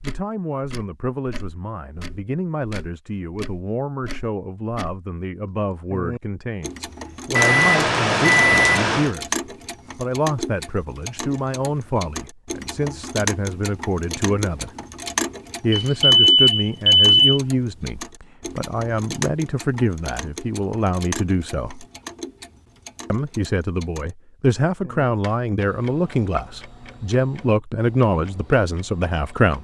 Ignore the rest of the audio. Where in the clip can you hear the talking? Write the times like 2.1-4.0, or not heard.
0.0-14.7, 15.6-21.9, 23.1-29.5.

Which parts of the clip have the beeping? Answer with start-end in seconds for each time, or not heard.
7.3-9.1, 15.7-17.2.